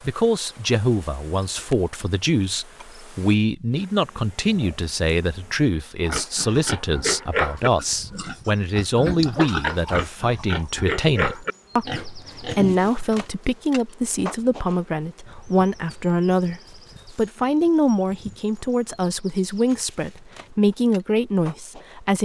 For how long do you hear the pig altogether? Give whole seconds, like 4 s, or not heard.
7 s.